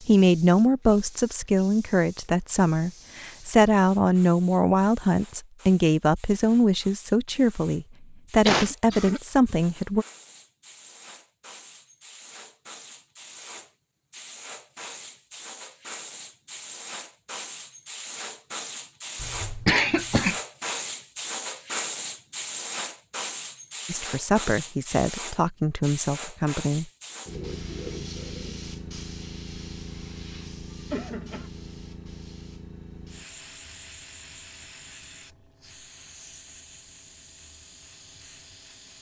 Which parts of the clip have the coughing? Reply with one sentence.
The coughing can be heard from 8.4 to 9.2 s, from 19.1 to 20.4 s and from 30.9 to 31.5 s.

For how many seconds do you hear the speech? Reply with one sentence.
You can hear the speech for 13 seconds altogether.